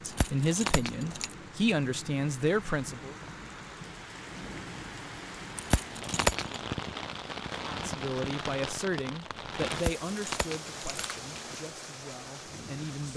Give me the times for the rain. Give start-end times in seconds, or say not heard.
0.0-13.1.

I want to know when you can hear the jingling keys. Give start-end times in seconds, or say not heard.
0.1-1.4, 5.5-6.6, 9.7-11.6.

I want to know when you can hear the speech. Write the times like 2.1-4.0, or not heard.
0.0-3.1, 7.7-13.1.